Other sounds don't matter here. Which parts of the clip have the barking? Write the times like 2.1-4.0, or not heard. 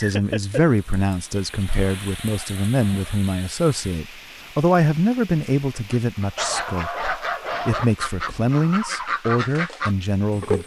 1.6-3.1, 6.3-7.8.